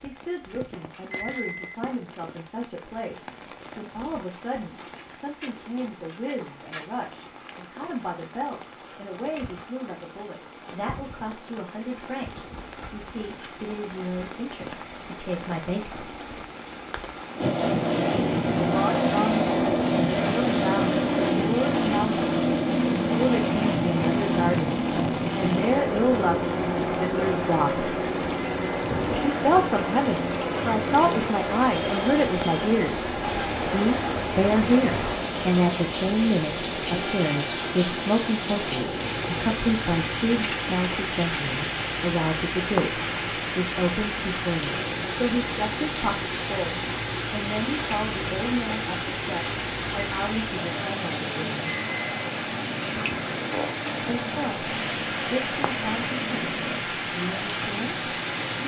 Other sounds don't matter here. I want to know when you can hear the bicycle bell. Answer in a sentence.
The bicycle bell can be heard from 1.1 to 1.8 s, from 28.4 to 28.9 s and from 51.6 to 52.2 s.